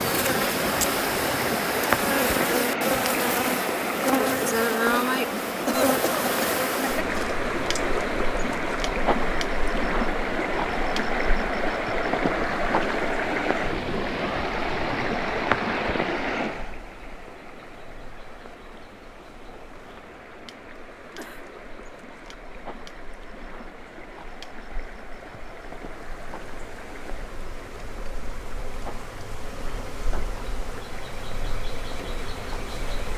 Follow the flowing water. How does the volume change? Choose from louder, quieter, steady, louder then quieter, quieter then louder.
quieter.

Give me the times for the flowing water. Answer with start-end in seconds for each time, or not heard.
0.0-33.1.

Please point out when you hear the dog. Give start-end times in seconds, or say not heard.
not heard.